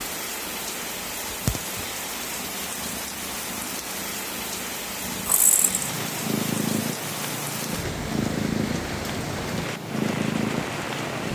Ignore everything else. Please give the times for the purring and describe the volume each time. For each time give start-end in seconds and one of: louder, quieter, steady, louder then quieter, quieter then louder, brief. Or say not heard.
0.0-11.2 quieter then louder.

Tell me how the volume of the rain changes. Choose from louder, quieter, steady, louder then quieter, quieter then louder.
steady.